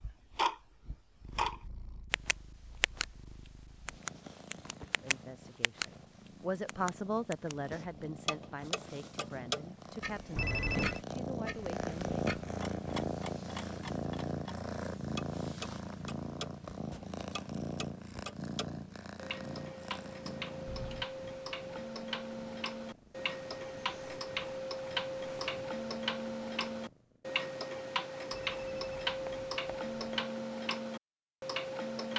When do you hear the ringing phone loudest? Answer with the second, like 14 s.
11 s.